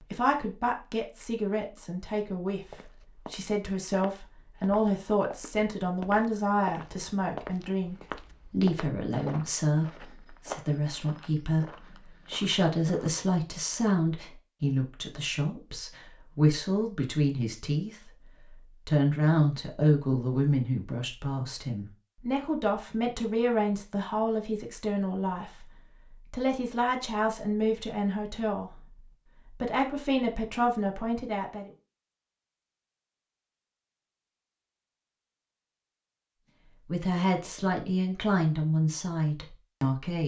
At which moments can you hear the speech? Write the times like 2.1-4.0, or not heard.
0.0-31.7, 36.9-40.2.